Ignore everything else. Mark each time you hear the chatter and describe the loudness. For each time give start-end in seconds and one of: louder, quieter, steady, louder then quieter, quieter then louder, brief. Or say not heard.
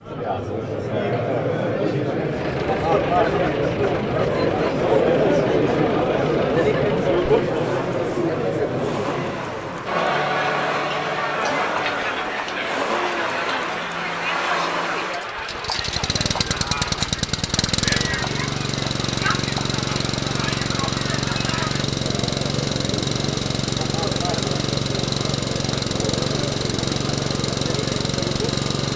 0.0-28.9 quieter.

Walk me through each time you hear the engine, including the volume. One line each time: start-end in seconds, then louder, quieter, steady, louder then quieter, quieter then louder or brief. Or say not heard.
2.2-28.9 louder.